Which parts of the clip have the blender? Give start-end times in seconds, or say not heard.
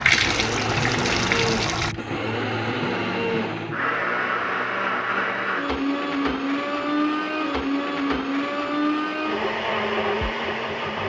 0.0-11.0.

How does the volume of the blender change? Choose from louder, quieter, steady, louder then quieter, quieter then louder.
steady.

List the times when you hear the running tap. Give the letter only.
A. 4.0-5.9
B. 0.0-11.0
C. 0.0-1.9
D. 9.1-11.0
C.